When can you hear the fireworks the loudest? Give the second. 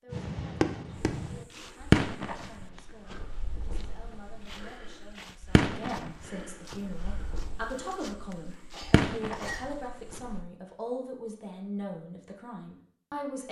2 s.